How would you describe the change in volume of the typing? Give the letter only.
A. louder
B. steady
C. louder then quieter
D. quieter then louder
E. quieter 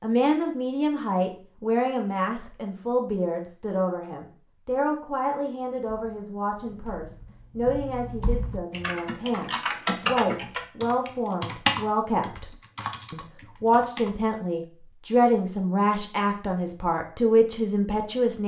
C.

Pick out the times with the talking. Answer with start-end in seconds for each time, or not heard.
0.0-18.4.